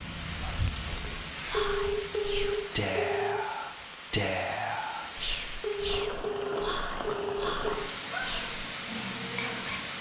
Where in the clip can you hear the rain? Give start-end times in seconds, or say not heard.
0.0-9.9.